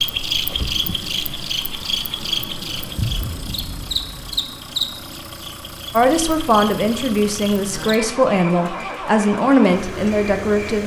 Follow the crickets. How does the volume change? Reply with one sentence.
The loudness of the crickets goes down.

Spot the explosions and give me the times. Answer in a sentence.
The explosions can be heard from 3.0 to 4.2 s.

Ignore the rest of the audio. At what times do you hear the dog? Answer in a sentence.
You can't hear the dog here.